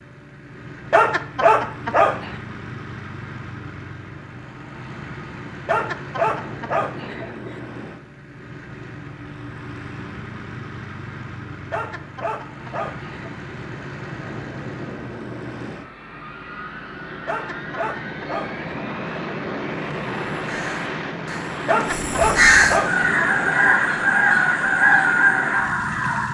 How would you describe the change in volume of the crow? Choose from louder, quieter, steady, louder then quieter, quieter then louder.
louder.